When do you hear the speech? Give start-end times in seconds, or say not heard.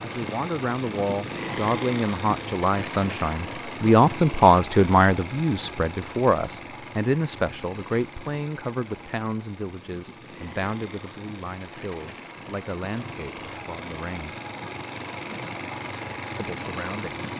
0.0-14.3, 16.4-17.2.